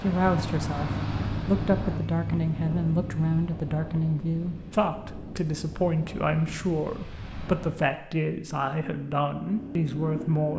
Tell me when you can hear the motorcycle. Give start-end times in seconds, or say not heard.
0.0-3.5, 8.4-10.5.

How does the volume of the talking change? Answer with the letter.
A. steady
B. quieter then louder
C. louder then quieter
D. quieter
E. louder
A.